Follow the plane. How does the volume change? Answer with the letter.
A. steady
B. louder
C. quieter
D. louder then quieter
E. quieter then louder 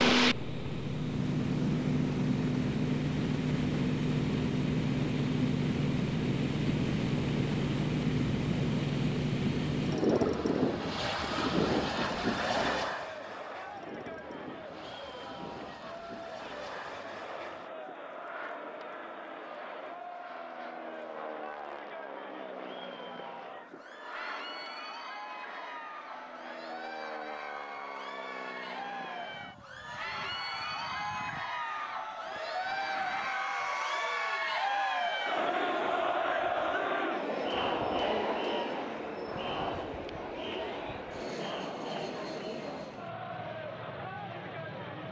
C.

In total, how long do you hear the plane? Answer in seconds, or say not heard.
45 s.